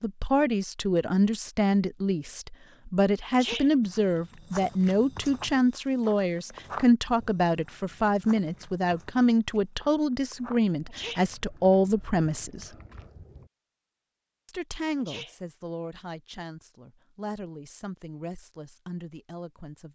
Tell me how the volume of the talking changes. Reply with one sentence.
The volume of the talking goes down.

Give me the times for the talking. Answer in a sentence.
You can hear the talking from 0.0 to 12.8 s and from 14.4 to 19.8 s.